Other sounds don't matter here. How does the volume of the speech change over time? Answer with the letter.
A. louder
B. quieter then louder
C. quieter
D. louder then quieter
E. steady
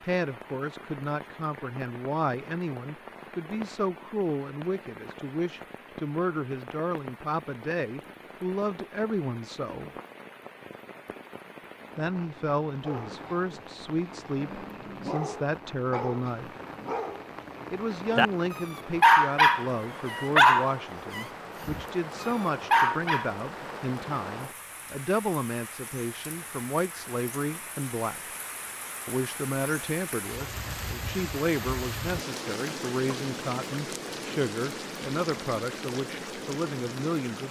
E.